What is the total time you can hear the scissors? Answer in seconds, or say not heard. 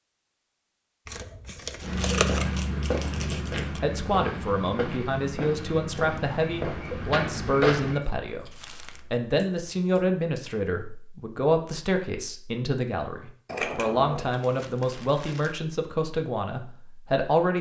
4 s.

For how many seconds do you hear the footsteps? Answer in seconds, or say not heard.
6 s.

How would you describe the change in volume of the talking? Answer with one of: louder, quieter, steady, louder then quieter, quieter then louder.
steady.